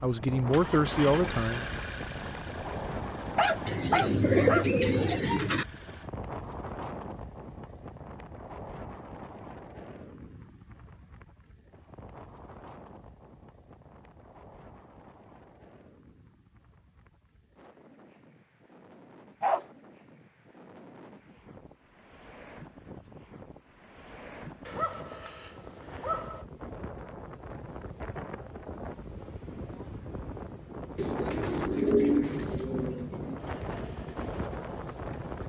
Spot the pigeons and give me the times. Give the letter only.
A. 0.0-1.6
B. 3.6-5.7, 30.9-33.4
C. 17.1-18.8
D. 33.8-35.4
B.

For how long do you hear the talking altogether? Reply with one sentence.
The talking can be heard for 2 seconds in total.